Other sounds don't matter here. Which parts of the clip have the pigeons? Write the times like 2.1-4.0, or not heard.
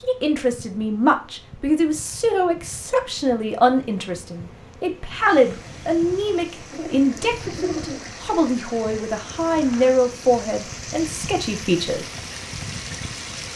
6.7-8.2.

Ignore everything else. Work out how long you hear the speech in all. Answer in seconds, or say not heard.
12 s.